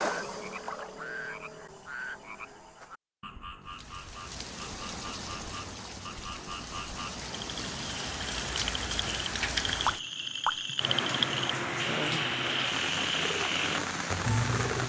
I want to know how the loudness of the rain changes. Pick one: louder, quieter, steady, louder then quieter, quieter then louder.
louder.